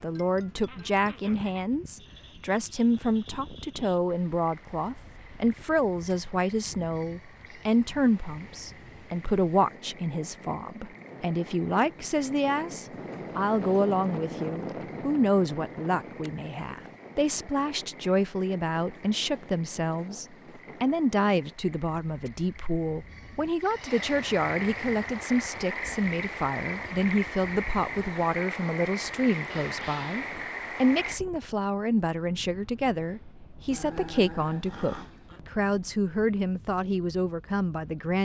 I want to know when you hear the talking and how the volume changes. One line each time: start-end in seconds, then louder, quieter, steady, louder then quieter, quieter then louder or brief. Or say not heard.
0.0-38.2 steady.